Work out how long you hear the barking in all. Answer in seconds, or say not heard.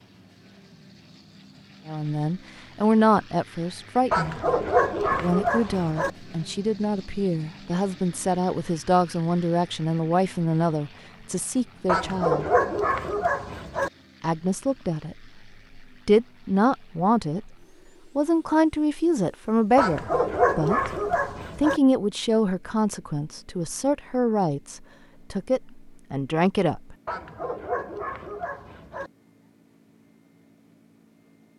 8 s.